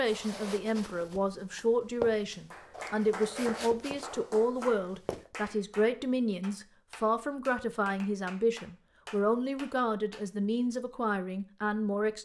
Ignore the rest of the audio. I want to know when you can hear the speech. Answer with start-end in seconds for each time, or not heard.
0.0-12.1.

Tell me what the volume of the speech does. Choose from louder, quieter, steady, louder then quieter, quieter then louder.
steady.